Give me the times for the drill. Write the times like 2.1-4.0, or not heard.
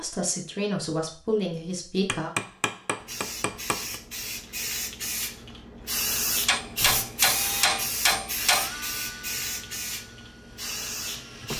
7.2-11.5.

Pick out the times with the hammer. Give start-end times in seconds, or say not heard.
2.0-4.0, 6.5-8.7.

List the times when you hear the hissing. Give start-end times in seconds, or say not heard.
3.0-11.5.